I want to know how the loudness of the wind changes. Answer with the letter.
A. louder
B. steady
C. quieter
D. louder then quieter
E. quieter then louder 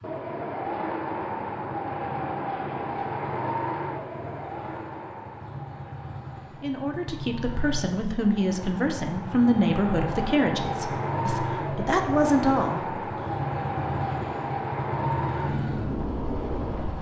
E.